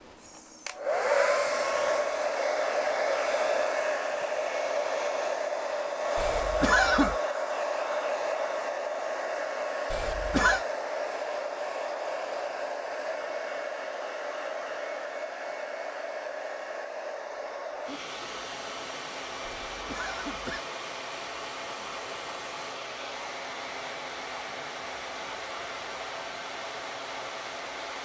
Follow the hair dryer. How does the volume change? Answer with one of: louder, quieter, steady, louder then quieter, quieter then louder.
quieter.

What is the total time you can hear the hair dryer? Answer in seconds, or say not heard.
28 s.